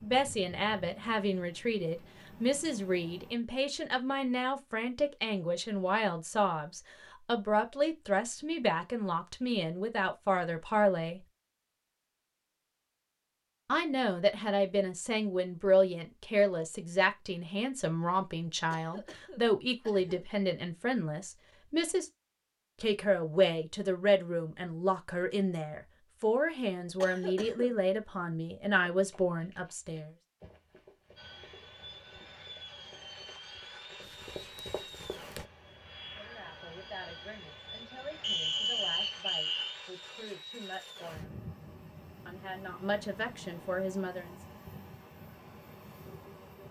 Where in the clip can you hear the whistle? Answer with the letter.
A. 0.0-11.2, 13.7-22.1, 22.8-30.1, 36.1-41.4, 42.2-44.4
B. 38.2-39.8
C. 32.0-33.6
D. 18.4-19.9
B.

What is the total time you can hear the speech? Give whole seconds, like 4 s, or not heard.
34 s.